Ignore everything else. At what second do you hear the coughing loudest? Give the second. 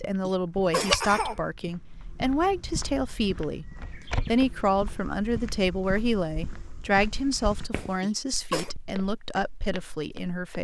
1 s.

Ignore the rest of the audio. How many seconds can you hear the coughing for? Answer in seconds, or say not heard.
2 s.